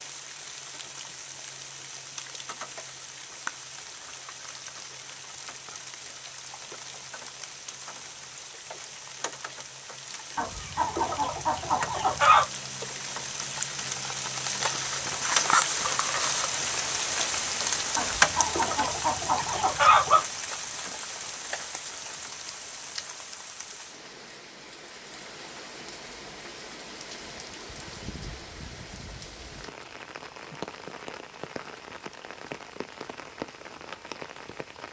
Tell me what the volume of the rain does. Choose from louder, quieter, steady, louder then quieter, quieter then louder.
louder then quieter.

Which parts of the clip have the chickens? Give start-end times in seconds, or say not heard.
10.3-12.4, 17.9-20.2.